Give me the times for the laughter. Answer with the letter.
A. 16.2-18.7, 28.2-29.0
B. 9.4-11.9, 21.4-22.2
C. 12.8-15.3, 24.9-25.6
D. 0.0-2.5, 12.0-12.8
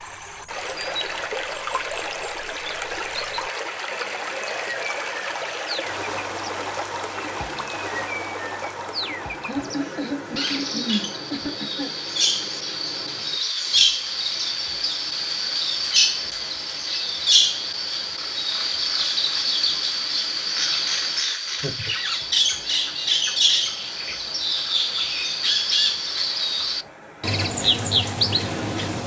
B.